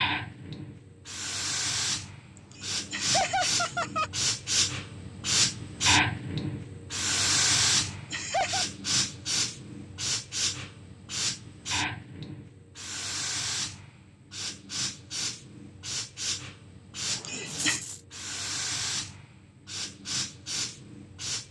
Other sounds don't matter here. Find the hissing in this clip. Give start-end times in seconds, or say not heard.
0.0-21.4.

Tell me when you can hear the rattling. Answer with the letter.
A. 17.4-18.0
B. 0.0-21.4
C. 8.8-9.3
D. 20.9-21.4
A.